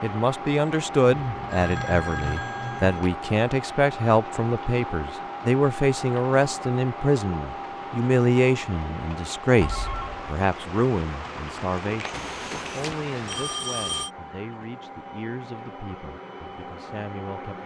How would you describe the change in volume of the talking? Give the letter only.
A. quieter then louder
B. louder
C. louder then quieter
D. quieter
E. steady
D.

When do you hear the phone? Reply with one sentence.
The phone can be heard from 1.2 to 3.0 s, from 9.6 to 10.2 s and from 12.1 to 14.1 s.